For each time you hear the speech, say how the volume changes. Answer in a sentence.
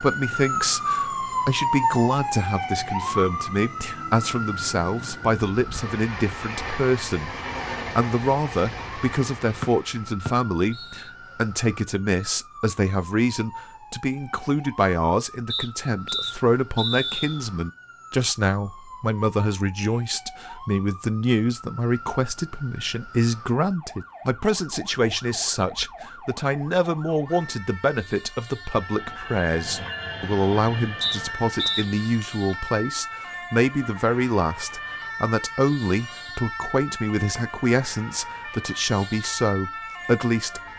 The speech can be heard from 0.0 to 40.6 s, at a steady volume.